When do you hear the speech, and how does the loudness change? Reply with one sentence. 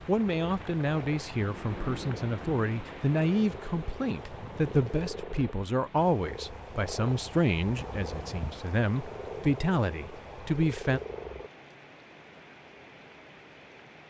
The speech can be heard from 0.1 to 11.0 s, at a steady volume.